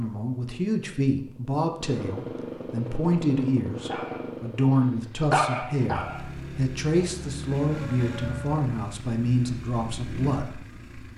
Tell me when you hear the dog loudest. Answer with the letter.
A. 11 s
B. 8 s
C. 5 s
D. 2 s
C.